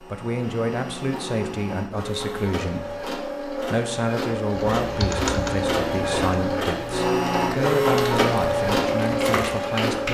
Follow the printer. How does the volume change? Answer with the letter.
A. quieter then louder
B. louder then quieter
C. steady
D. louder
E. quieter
D.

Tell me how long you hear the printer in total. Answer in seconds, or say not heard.
10 s.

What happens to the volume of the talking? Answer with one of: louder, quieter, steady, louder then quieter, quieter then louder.
steady.